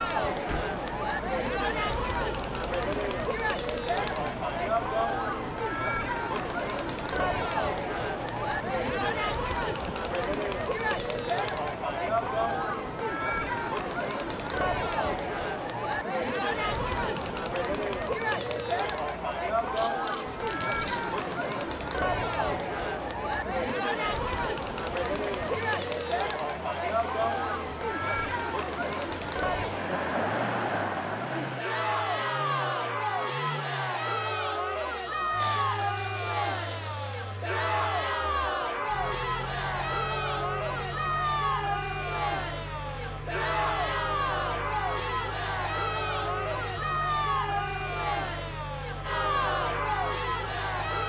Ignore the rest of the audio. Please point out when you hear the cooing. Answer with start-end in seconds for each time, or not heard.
not heard.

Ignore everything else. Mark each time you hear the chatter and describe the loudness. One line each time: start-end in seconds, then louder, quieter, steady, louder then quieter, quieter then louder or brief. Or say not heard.
0.0-51.0 steady.